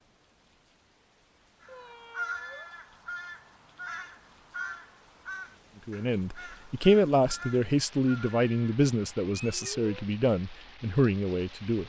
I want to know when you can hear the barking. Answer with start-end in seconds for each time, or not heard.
not heard.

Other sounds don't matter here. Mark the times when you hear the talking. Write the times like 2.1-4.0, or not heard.
5.8-11.8.